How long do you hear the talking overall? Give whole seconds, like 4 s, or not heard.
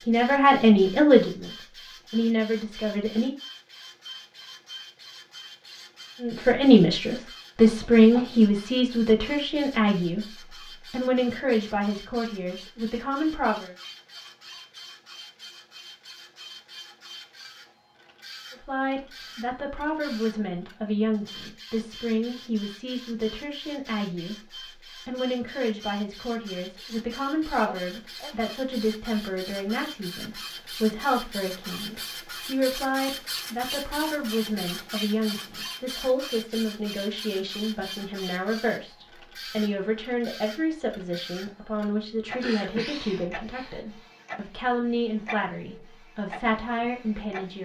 39 s.